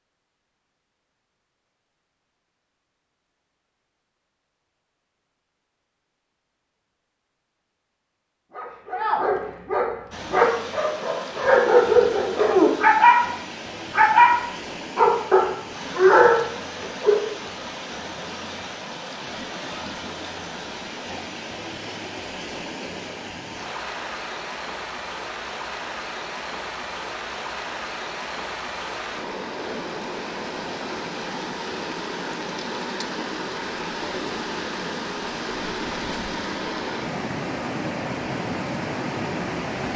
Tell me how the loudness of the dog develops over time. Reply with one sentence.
The volume of the dog goes up.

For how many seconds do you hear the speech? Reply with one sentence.
The speech can't be heard in this clip.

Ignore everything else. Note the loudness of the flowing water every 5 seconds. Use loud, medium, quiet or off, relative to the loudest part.
off, off, medium, medium, medium, loud, loud, loud.